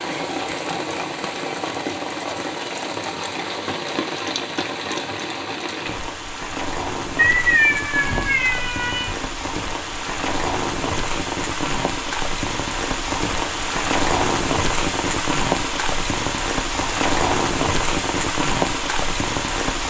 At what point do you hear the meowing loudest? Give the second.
8 s.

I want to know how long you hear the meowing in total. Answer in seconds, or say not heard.
2 s.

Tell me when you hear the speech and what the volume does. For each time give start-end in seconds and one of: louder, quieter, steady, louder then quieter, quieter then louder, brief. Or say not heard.
not heard.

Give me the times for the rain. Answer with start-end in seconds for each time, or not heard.
0.0-19.8.